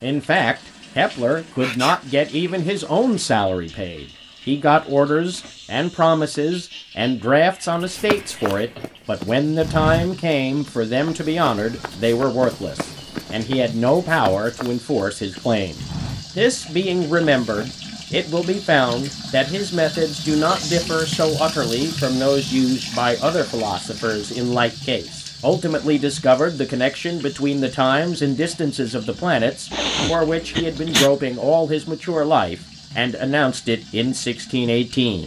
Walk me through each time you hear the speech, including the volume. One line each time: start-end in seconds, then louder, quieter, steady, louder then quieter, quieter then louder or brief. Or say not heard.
0.0-35.2 steady.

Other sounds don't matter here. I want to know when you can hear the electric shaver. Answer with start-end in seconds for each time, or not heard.
not heard.